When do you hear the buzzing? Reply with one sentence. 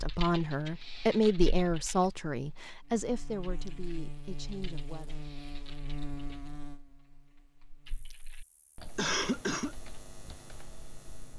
You can hear the buzzing from 2.9 to 11.3 s.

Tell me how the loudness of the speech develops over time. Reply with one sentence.
The loudness of the speech goes down.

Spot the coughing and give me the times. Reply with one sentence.
The coughing can be heard from 8.9 to 9.8 s.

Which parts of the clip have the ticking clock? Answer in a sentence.
The ticking clock can't be heard in this clip.